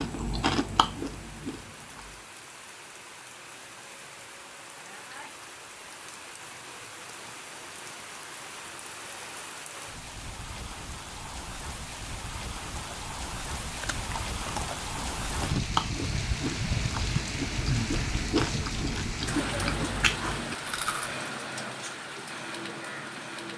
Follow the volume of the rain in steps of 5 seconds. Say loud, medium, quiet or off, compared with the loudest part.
quiet, medium, medium, loud, loud.